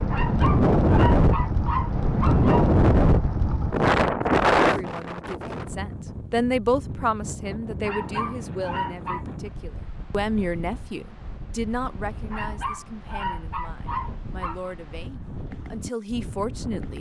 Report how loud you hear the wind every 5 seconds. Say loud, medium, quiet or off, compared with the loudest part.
loud, quiet, quiet, quiet.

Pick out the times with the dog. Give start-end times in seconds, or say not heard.
0.1-2.7, 7.8-9.2, 12.3-14.7.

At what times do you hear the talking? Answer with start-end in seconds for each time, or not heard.
4.6-16.9.